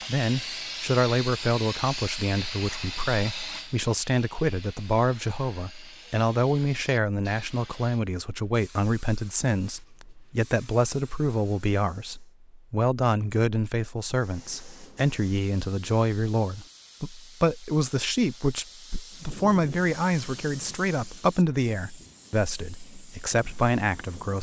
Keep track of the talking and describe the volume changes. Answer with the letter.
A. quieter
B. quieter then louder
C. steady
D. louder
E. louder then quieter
C.